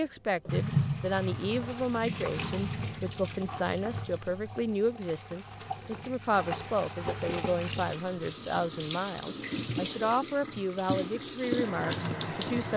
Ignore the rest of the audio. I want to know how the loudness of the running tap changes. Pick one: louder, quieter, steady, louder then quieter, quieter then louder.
quieter then louder.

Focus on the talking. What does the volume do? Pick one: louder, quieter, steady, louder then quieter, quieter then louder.
steady.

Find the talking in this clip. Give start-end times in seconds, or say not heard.
0.0-12.7.